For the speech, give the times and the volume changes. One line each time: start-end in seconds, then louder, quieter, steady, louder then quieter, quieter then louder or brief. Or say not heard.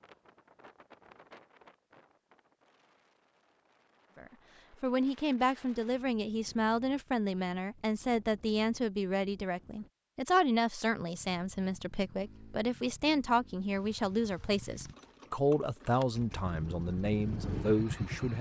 4.2-18.3 steady.